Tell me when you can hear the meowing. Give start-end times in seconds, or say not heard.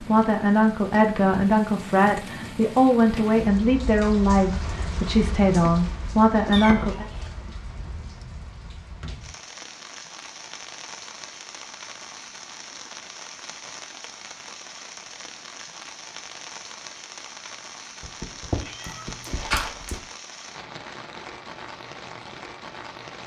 6.5-7.3, 18.0-20.0.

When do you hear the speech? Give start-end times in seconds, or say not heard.
0.0-7.0.